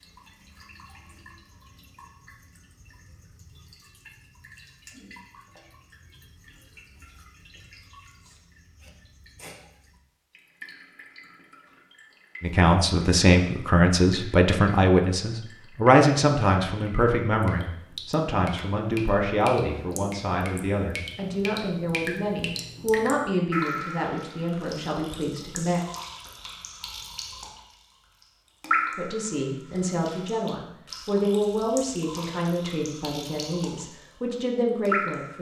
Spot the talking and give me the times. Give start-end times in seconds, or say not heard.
12.4-25.8, 28.9-35.3.